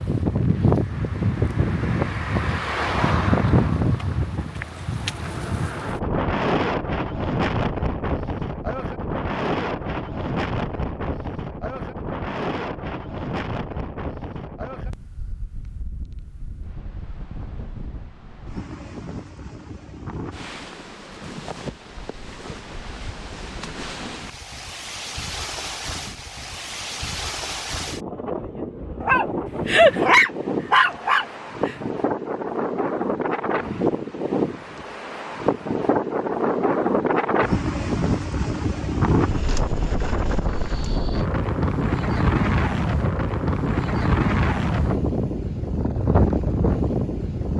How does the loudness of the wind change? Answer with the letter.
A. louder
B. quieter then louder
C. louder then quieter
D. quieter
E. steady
B.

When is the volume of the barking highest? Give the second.
30 s.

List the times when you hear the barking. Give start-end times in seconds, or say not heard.
29.0-31.8.